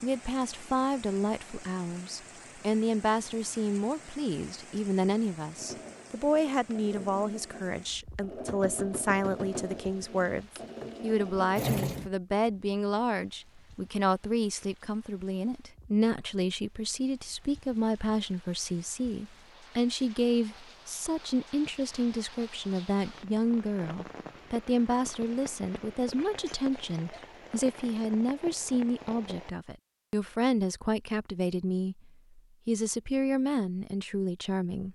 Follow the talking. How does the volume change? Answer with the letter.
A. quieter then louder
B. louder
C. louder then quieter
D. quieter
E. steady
E.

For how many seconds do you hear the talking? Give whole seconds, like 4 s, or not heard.
35 s.